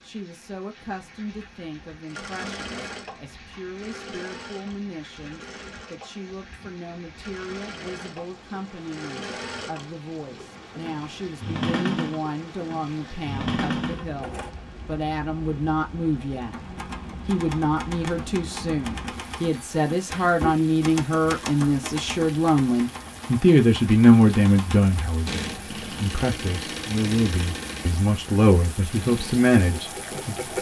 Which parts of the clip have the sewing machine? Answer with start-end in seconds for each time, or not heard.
2.0-14.5, 25.2-30.5.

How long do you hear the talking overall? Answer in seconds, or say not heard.
30 s.